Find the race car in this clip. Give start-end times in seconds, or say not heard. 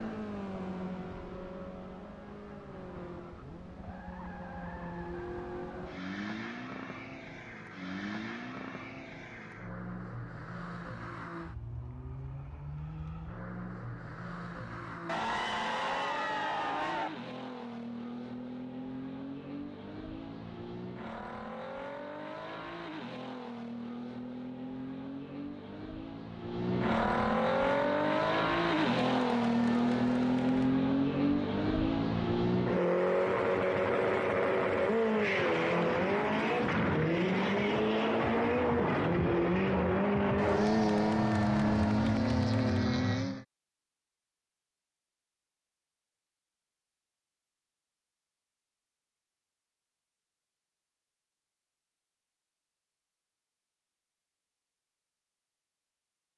0.0-43.5.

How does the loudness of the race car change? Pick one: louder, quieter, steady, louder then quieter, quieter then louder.
louder.